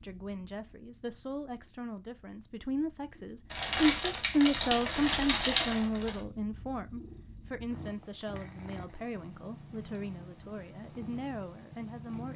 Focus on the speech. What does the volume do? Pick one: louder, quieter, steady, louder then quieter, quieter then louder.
louder then quieter.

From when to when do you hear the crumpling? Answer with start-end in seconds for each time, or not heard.
3.5-6.2.